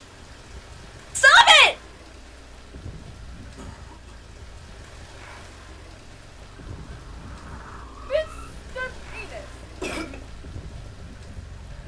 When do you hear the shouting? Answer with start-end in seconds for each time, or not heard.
1.1-1.8, 8.1-10.2.